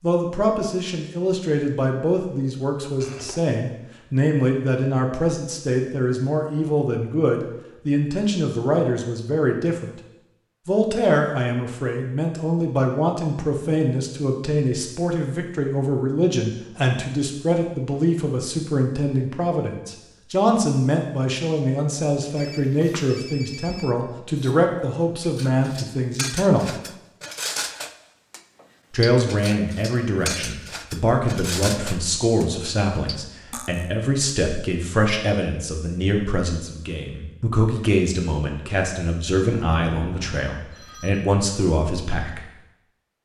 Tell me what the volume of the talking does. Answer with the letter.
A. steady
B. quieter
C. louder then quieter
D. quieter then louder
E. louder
A.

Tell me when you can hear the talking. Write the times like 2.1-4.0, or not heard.
0.0-9.9, 10.7-26.8, 28.9-42.5.